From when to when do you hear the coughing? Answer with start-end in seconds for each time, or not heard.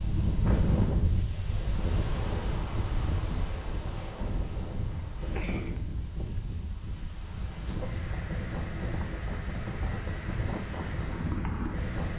5.3-6.3.